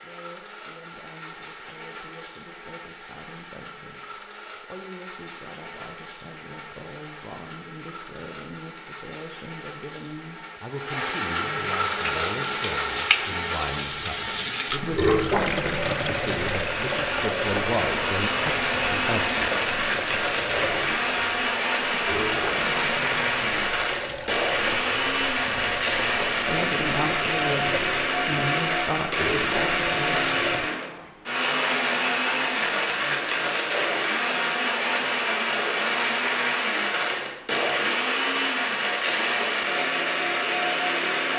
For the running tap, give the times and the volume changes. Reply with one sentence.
The running tap can be heard from 11.8 to 30.7 s, getting quieter.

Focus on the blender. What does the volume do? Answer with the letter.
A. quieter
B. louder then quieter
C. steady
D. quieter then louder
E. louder
E.